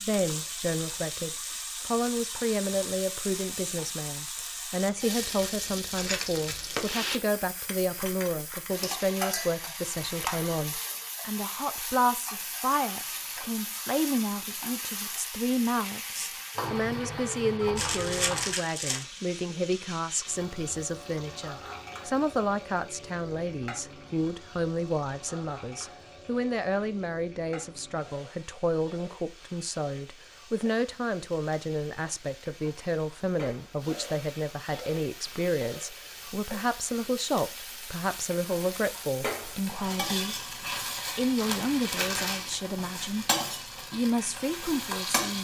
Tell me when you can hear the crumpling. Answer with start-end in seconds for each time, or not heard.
6.0-6.8, 17.8-19.1, 41.4-42.5.